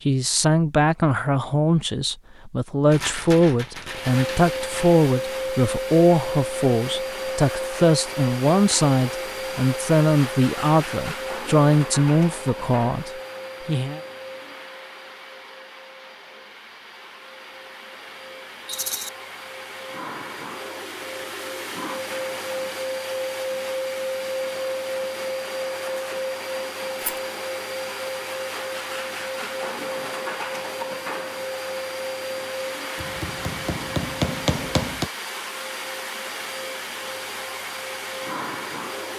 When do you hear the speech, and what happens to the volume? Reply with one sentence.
The speech can be heard from 0.1 to 14.0 s, at a steady volume.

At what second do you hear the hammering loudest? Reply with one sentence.
The volume of the hammering peaks at 34 seconds.